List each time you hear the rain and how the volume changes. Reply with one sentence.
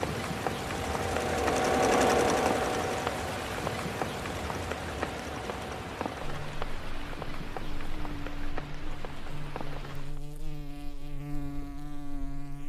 You can hear the rain from 0.0 to 10.2 s, getting quieter.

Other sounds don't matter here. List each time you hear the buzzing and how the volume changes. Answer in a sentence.
You can hear the buzzing from 6.2 to 12.6 s, getting louder.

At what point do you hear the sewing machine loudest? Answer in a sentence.
The volume of the sewing machine peaks at 2 seconds.